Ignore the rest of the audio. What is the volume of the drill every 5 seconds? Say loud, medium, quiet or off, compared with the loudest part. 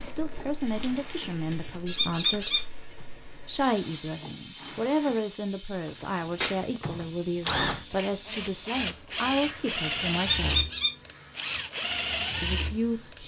quiet, loud, loud.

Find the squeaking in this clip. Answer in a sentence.
You can hear the squeaking from 1.9 to 2.6 s and from 10.3 to 10.9 s.